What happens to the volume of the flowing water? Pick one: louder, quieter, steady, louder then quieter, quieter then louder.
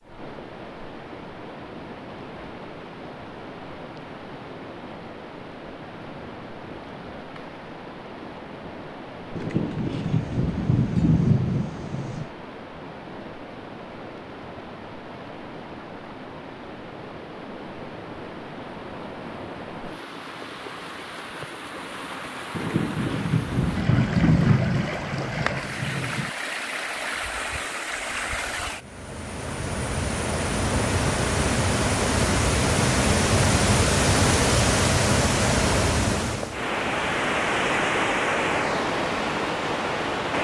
louder.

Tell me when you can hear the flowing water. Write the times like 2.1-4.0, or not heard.
0.0-40.3.